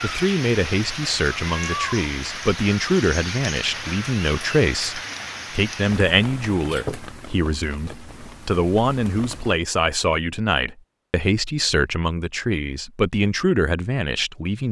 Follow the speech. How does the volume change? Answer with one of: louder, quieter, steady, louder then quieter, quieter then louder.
steady.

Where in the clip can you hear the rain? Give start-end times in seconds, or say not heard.
0.0-9.6.